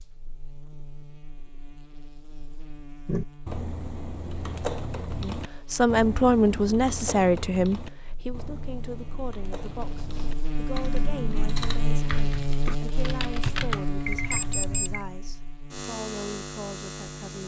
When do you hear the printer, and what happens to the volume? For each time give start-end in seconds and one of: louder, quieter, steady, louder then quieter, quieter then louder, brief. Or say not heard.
not heard.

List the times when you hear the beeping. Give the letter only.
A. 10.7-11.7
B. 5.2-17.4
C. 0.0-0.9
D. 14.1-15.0
D.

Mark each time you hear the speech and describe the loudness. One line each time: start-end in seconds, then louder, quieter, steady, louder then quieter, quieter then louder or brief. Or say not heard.
5.2-17.4 quieter.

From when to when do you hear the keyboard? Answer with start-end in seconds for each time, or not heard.
3.0-14.7.